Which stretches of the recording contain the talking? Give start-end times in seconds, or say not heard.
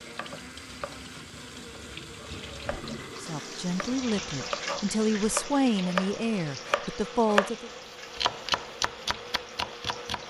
3.2-7.7.